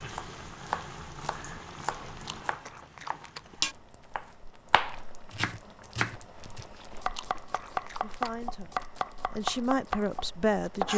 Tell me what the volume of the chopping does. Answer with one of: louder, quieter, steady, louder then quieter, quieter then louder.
quieter then louder.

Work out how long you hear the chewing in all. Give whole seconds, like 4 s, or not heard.
4 s.